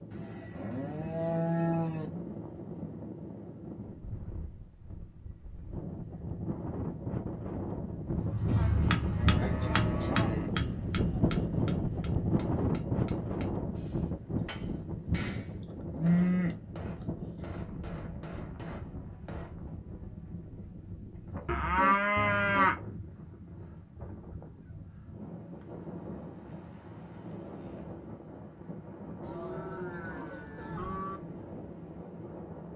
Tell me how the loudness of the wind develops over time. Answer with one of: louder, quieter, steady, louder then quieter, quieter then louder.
louder then quieter.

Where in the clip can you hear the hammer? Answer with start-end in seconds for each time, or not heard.
8.0-19.8.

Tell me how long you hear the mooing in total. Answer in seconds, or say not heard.
9 s.